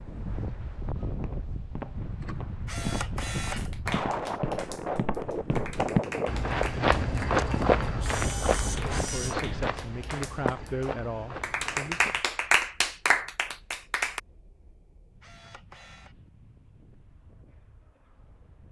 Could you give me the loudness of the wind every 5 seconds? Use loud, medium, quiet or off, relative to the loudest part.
loud, loud, quiet, quiet.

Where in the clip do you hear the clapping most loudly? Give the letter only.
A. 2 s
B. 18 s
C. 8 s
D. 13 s
D.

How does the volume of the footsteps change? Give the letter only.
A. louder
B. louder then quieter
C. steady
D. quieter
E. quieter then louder
B.